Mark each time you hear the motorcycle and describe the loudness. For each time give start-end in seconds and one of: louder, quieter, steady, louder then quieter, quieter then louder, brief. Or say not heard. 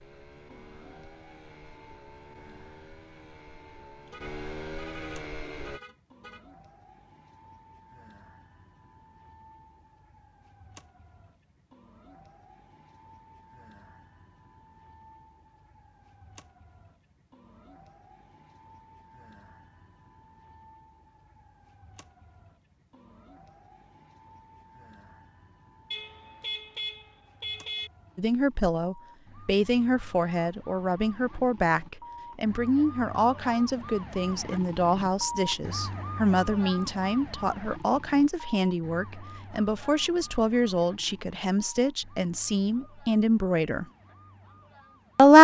0.0-5.8 louder.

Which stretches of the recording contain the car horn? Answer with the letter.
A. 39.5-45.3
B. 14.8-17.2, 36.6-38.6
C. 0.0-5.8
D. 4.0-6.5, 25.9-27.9
D.